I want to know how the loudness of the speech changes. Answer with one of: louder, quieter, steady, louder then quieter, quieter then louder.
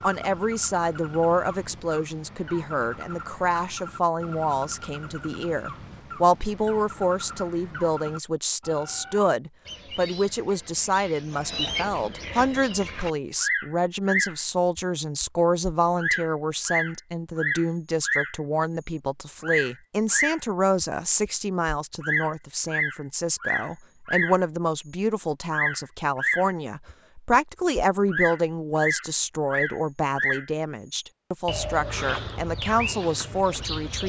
steady.